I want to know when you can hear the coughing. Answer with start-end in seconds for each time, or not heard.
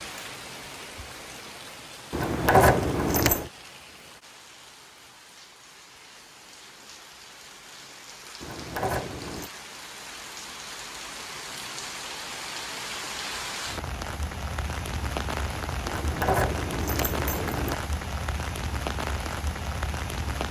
not heard.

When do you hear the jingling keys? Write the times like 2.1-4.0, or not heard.
2.1-3.5, 8.4-9.5, 15.8-17.8.